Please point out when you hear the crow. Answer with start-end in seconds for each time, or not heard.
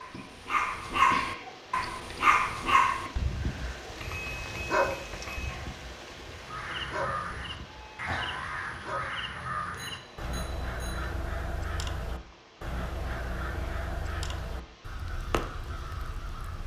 6.3-16.6.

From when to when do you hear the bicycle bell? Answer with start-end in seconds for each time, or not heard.
4.0-5.5, 9.8-11.1.